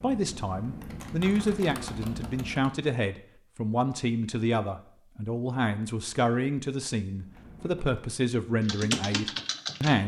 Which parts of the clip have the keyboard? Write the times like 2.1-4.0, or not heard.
0.0-2.9, 7.1-10.0.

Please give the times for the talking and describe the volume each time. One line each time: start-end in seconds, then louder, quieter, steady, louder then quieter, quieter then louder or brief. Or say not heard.
0.0-10.0 steady.